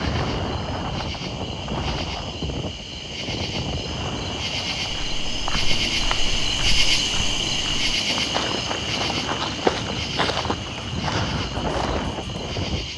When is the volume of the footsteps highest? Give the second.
10 s.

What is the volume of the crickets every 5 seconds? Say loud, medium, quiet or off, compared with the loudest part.
medium, loud, medium.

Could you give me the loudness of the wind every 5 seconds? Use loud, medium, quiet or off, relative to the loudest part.
loud, medium, loud.